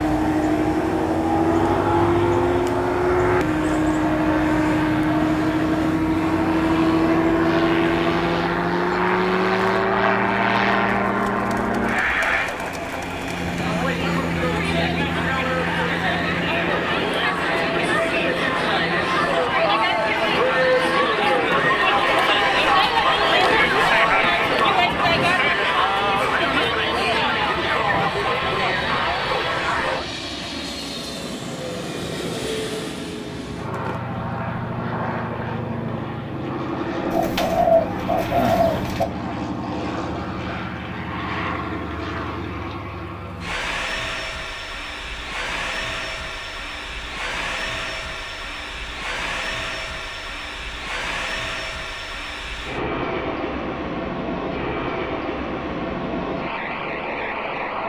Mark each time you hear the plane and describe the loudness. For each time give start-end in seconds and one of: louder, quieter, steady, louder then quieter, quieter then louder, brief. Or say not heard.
0.0-57.8 quieter.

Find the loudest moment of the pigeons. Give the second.
38 s.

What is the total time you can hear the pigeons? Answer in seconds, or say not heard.
2 s.